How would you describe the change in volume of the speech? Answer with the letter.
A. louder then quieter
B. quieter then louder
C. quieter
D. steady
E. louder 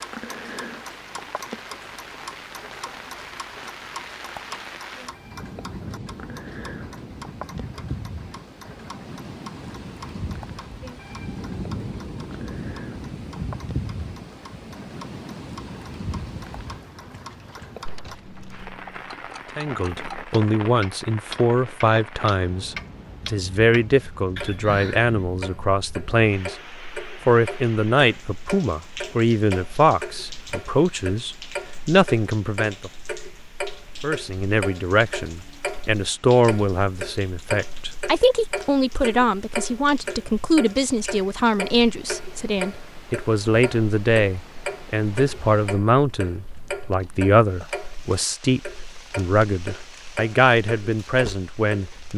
D.